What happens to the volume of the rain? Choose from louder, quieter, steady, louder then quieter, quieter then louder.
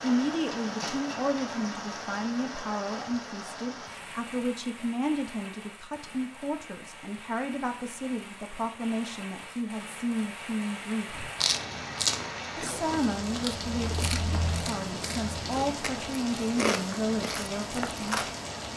quieter then louder.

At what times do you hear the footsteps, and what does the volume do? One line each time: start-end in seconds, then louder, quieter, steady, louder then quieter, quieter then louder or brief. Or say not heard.
not heard.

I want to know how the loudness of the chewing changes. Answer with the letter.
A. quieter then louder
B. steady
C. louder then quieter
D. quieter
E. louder
A.